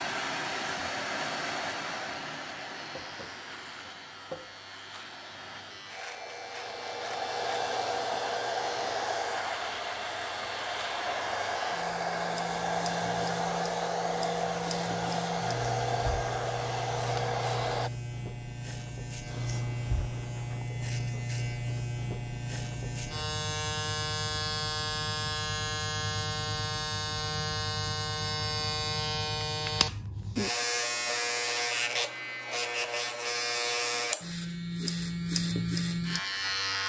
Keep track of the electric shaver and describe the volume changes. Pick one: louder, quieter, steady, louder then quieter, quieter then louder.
louder.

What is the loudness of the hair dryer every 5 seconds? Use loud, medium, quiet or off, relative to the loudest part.
medium, loud, loud, loud, off, off, off, off.